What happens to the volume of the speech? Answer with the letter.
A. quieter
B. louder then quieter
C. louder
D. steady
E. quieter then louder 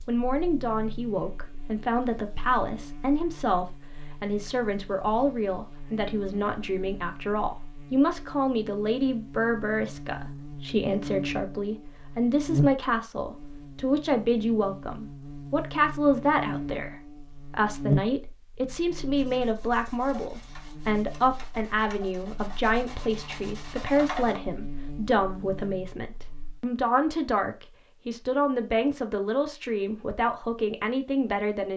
D.